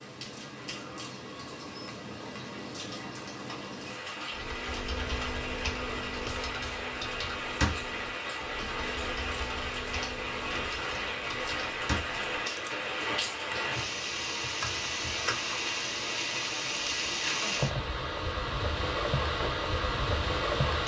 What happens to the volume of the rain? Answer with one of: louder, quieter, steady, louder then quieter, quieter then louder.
louder.